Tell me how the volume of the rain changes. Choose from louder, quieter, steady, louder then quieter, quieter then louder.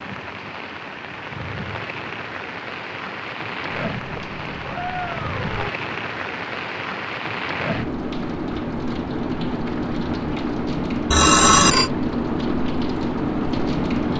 louder.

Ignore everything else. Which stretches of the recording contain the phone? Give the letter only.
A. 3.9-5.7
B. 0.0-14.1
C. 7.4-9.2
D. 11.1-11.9
D.